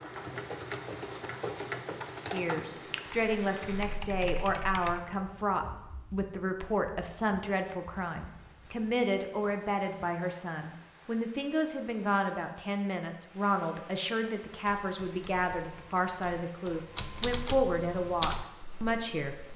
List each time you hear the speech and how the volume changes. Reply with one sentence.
The speech can be heard from 2.3 to 19.4 s, at a steady volume.